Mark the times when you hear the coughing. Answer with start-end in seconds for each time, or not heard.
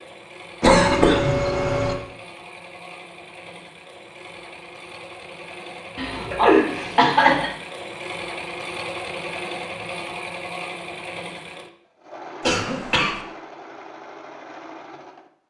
0.6-1.9, 6.0-7.5, 12.4-13.2.